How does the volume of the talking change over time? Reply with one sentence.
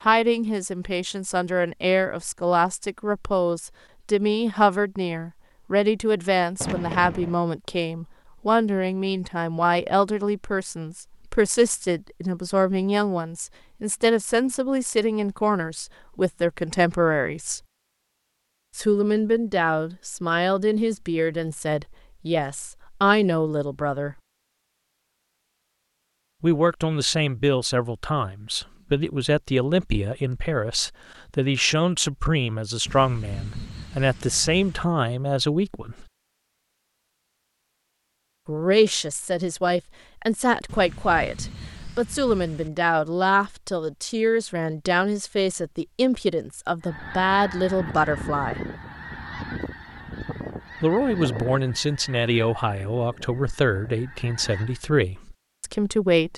The loudness of the talking stays about the same.